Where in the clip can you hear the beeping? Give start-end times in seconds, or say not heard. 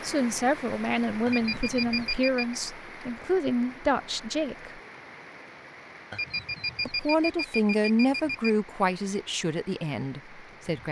1.2-2.5, 6.1-8.5.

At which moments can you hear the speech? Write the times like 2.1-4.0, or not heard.
0.0-4.8, 6.8-10.8.